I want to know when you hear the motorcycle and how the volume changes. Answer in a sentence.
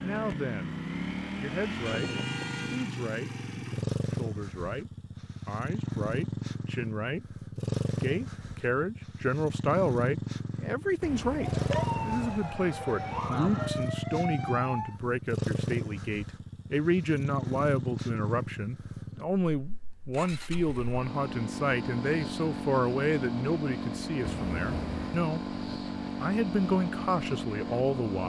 You can hear the motorcycle from 0.0 to 28.2 s, at a steady volume.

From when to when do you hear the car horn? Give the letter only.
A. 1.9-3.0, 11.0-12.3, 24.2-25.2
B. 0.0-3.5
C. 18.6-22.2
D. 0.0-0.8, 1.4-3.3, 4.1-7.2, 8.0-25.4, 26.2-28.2
A.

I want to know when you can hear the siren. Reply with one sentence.
You can hear the siren from 11.4 to 15.0 s.